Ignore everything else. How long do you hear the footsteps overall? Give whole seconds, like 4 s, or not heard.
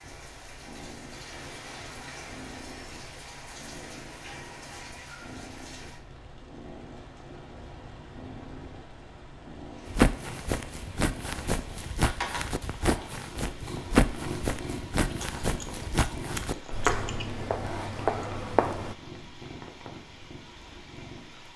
9 s.